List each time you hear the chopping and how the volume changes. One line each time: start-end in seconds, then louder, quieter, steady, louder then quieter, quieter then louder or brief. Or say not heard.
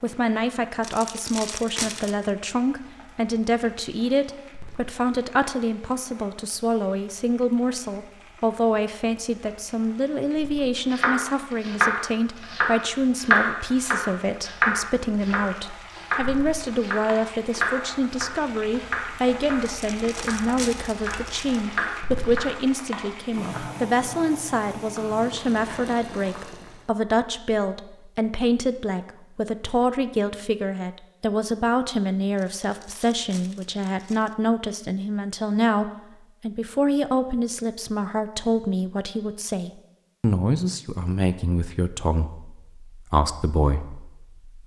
10.9-22.6 quieter.